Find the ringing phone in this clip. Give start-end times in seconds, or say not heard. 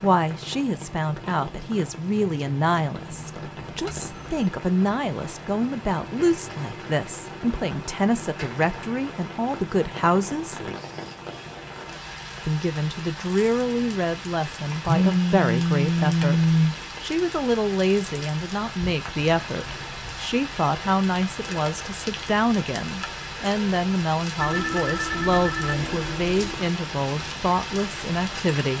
3.6-4.5, 14.8-16.8, 24.4-26.7.